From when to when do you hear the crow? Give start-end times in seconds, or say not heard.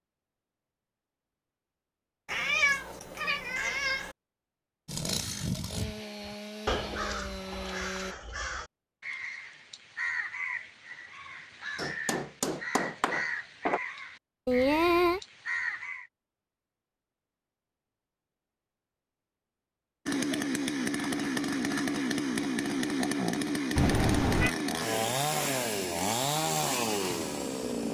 5.0-16.1.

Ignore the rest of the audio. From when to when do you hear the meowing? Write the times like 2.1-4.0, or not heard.
2.2-4.2, 14.4-15.2, 23.8-24.6.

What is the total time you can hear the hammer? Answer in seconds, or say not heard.
2 s.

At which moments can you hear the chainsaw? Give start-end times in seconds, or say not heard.
4.8-8.2, 20.1-27.8.